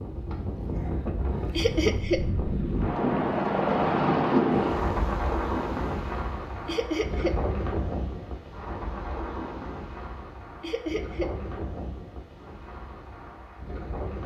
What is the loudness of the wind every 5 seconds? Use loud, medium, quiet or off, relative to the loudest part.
loud, medium, quiet.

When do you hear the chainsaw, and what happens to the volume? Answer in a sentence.
You can't hear the chainsaw here.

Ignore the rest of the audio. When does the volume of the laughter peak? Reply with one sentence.
The loudest moment of the laughter is at 2 seconds.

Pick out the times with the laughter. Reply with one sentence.
You can hear the laughter from 1.6 to 2.2 s, from 6.7 to 7.3 s and from 10.6 to 11.3 s.